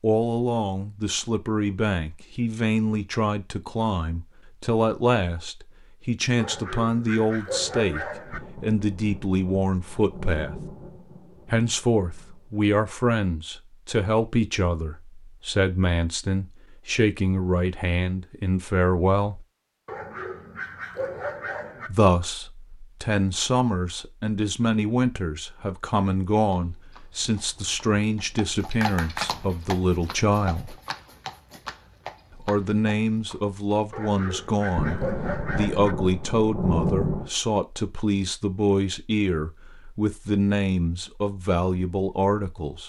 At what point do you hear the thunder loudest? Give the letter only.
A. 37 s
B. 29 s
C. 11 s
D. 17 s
A.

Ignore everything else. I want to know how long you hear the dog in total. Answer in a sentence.
You can hear the dog for 6 seconds altogether.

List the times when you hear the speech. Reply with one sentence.
The speech can be heard from 0.0 to 10.6 s, from 11.5 to 19.4 s, from 21.9 to 30.8 s and from 32.4 to 42.8 s.